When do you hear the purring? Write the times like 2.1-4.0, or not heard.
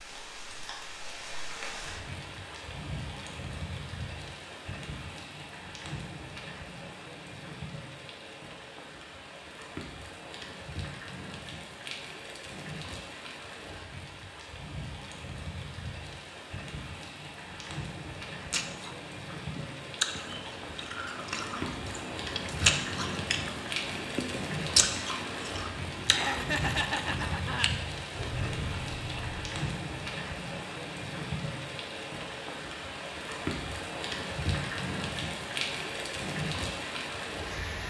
not heard.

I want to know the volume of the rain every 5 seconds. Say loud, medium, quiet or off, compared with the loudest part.
medium, medium, medium, medium, loud, loud, loud, loud.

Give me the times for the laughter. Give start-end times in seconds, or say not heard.
26.1-27.7.